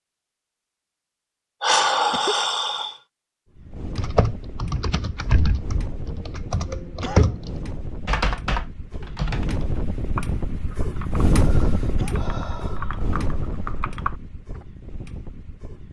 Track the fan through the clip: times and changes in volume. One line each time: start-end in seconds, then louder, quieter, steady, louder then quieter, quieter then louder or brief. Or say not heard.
3.5-15.8 louder then quieter.